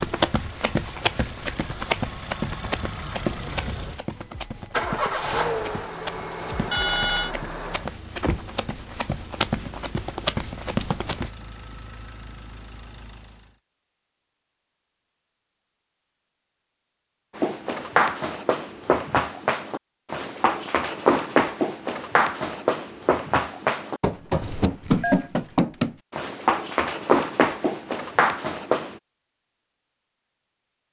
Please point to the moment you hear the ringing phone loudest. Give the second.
7 s.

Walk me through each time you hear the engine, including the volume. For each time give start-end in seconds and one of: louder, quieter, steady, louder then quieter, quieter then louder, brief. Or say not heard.
0.0-13.6 louder then quieter.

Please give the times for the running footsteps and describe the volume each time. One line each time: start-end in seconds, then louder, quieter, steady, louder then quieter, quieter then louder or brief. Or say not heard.
0.0-11.3 quieter then louder
17.4-29.0 steady.